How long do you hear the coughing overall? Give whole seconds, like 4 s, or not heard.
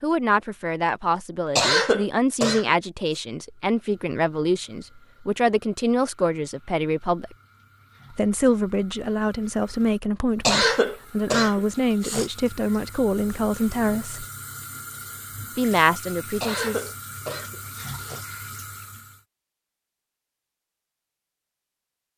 5 s.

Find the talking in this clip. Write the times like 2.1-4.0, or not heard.
0.0-7.3, 8.1-14.2, 15.6-16.9.